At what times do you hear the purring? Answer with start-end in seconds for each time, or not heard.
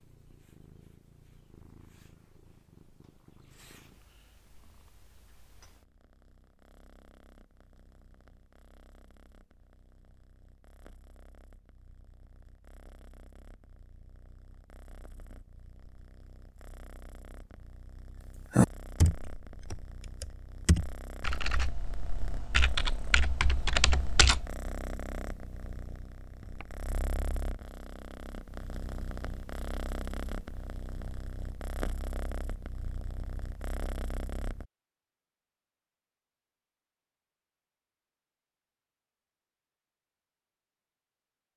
0.0-34.6.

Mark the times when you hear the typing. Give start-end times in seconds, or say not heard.
18.5-24.4.